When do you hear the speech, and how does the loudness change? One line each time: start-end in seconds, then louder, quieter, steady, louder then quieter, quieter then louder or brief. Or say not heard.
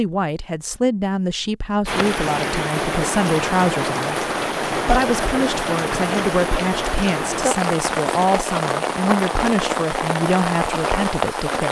0.0-11.6 steady.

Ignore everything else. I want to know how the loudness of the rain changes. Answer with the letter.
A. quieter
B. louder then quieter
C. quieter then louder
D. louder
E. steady
E.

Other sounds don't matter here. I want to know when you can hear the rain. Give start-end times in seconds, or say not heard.
1.9-11.6.